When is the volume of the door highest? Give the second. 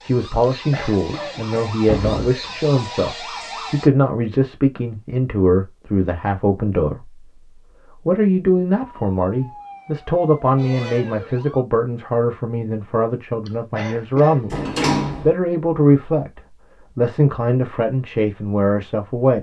15 s.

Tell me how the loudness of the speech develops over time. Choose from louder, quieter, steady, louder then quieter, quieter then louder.
steady.